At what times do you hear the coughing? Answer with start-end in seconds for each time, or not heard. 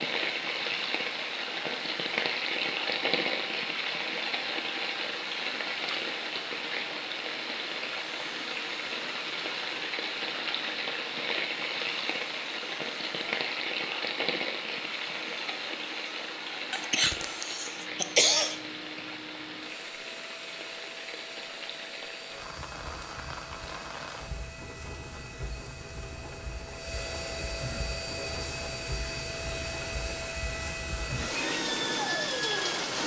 16.7-18.6.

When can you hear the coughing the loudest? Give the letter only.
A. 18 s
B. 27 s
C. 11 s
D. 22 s
A.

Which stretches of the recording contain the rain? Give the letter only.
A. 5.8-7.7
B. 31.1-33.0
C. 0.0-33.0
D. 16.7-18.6
C.